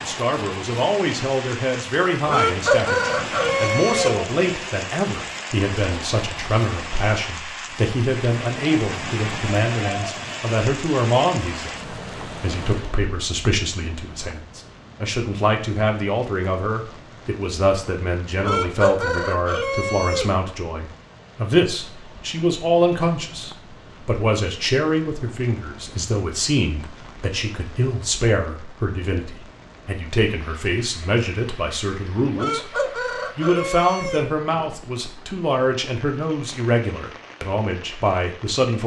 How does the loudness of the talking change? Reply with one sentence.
The volume of the talking stays about the same.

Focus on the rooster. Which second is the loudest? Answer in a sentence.
The loudest moment of the rooster is at 3 seconds.